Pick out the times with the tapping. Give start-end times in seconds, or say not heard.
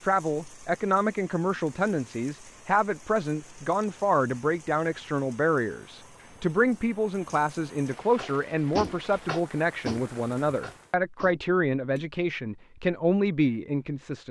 8.2-12.1.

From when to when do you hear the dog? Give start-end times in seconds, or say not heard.
not heard.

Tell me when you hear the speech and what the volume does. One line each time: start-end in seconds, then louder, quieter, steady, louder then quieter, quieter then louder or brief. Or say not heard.
0.0-14.2 steady.